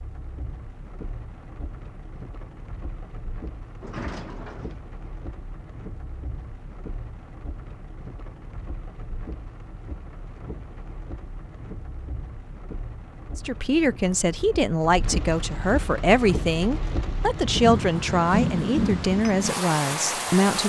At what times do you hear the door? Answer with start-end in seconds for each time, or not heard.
3.8-4.8.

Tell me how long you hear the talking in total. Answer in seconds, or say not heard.
7 s.